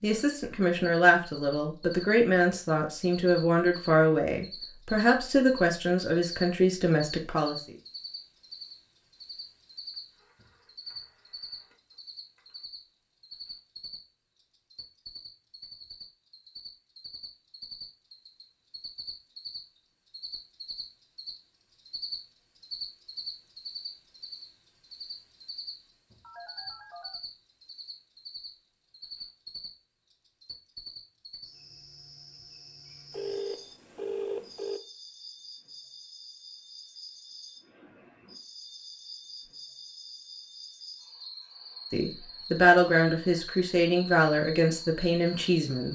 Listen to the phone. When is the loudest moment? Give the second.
34 s.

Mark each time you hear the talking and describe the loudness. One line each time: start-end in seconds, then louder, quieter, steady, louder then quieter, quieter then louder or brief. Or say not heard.
0.0-7.5 steady
41.9-45.9 quieter.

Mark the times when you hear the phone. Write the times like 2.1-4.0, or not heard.
10.1-12.7, 26.2-27.2, 33.1-34.8.